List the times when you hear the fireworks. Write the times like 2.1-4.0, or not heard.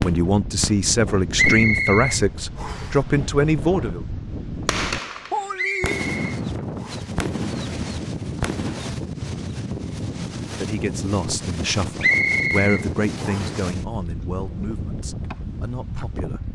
0.0-1.6, 4.7-8.8.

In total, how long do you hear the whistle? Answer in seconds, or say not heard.
5 s.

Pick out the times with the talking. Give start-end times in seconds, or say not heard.
0.0-4.0, 10.6-16.5.